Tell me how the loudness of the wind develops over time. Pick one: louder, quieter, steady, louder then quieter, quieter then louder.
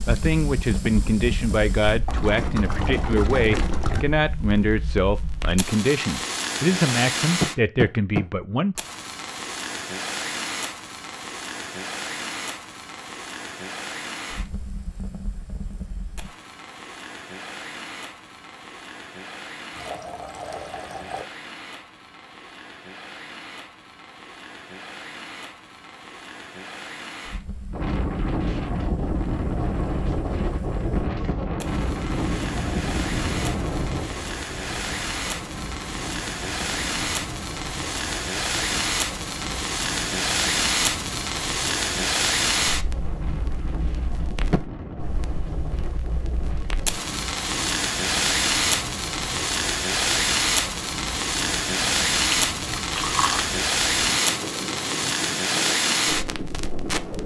quieter.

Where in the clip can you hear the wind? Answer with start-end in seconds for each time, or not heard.
27.7-57.2.